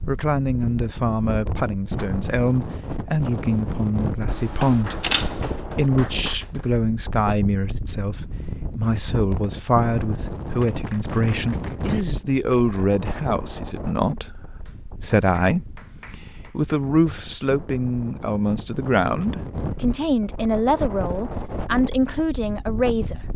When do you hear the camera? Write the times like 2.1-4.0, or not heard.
4.2-5.6.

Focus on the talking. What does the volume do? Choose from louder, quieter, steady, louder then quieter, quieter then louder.
steady.